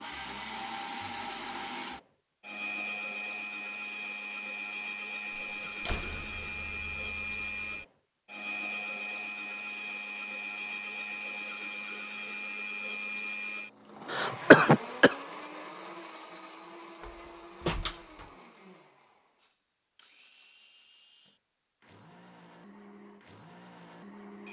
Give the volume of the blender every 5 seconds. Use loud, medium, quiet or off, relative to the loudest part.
loud, loud, loud, medium, quiet.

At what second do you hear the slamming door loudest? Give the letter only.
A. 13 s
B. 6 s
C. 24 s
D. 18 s
D.